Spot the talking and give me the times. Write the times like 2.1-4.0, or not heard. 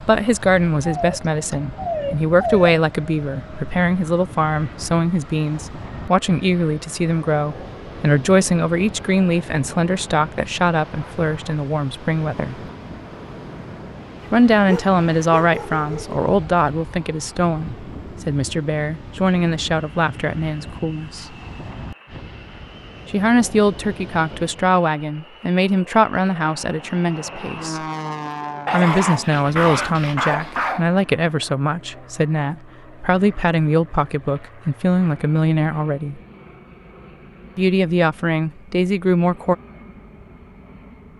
0.0-12.6, 14.3-21.2, 23.1-27.8, 28.7-36.2, 37.5-39.5.